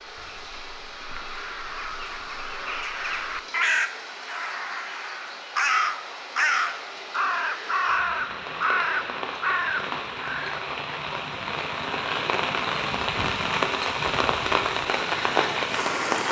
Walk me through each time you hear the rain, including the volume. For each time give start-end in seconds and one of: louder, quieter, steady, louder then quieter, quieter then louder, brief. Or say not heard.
0.0-16.2 louder.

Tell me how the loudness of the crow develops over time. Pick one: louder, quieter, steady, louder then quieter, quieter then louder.
louder.